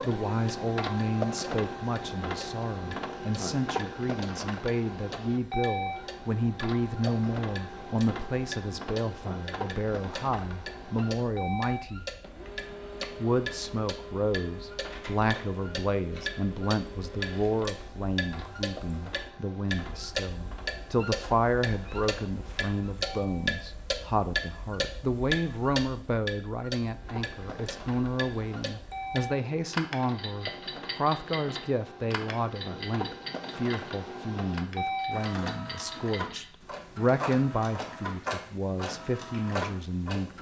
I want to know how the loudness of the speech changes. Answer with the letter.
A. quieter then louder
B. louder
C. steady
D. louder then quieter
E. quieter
C.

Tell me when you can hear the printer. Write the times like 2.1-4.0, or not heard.
0.0-23.5, 26.8-40.3.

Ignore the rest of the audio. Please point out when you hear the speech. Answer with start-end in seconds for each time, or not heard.
0.1-12.1, 13.2-40.3.